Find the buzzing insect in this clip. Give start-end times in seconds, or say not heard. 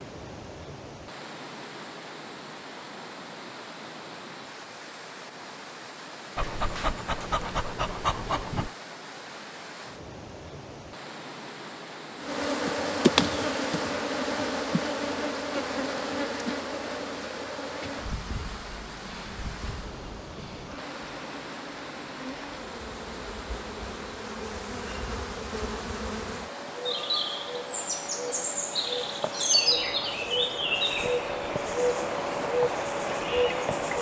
12.2-33.9.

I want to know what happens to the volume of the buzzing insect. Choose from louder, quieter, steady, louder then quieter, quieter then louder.
quieter then louder.